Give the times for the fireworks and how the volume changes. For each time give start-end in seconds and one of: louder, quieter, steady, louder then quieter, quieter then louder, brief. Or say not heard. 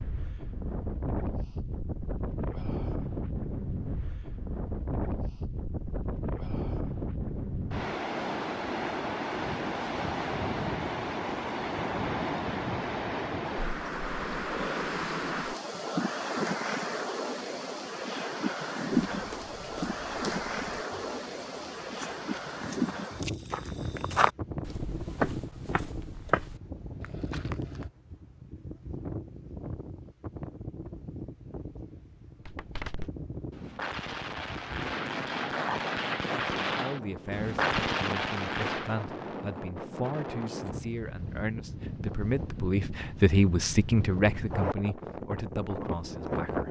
32.5-39.0 louder.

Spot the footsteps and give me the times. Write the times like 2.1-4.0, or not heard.
19.1-27.9.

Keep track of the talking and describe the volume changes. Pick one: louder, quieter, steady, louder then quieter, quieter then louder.
louder then quieter.